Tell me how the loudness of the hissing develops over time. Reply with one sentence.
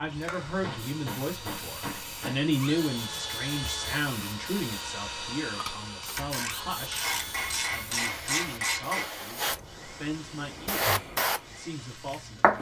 The volume of the hissing goes up.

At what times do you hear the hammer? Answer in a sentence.
You can hear the hammer from 0.6 to 2.5 s and from 7.0 to 9.1 s.